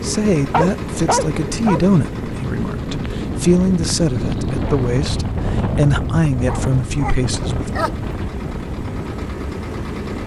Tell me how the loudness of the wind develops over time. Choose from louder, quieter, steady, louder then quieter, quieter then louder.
louder then quieter.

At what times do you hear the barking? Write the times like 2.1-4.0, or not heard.
0.5-1.8, 6.5-8.1.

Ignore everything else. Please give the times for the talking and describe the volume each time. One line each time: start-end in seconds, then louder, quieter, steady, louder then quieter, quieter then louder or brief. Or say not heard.
0.0-7.8 steady.